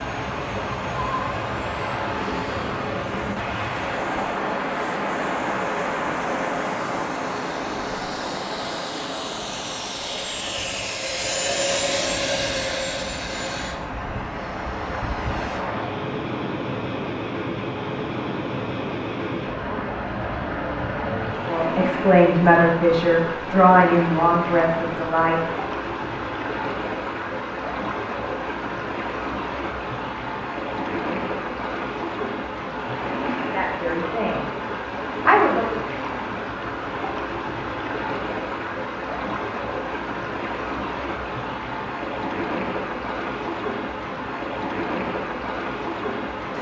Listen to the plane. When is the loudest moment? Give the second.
12 s.